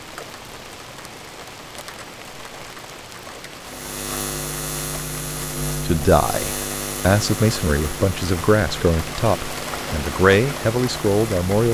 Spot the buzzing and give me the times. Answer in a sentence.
You can hear the buzzing from 3.6 to 11.6 s.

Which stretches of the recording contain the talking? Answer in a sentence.
You can hear the talking from 5.8 to 11.6 s.